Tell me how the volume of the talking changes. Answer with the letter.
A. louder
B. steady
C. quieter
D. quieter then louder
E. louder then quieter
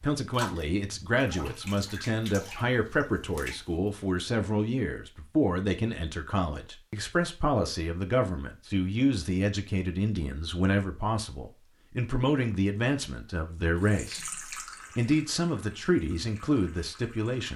B.